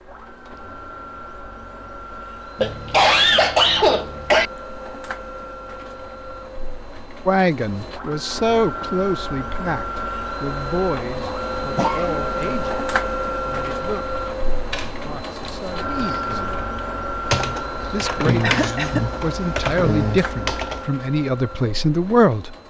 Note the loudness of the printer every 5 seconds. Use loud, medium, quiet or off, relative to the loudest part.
medium, medium, loud, loud, medium.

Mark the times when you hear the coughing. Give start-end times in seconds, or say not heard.
2.5-4.5, 11.8-12.6, 18.4-19.1.